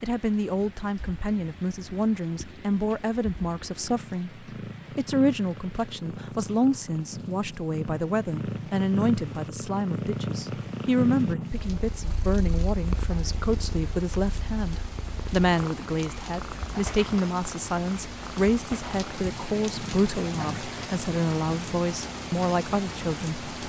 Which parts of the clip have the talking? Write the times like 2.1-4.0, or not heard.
0.0-23.6.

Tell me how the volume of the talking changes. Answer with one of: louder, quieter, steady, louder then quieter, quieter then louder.
steady.